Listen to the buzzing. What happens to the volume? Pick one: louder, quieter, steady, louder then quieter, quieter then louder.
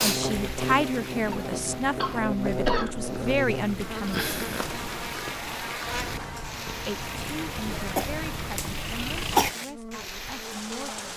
quieter.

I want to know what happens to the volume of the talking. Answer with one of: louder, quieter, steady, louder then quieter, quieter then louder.
quieter.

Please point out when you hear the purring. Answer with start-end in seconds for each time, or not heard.
0.0-9.5.